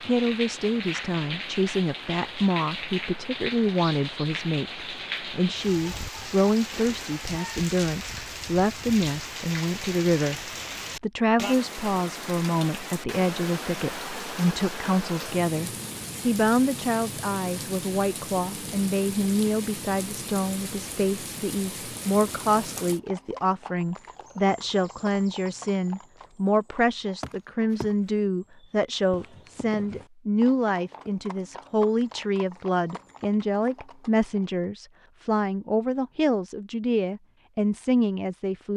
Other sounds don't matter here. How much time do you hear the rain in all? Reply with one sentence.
You can hear the rain for 23 seconds altogether.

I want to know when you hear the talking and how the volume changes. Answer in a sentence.
The talking can be heard from 0.0 to 38.7 s, at a steady volume.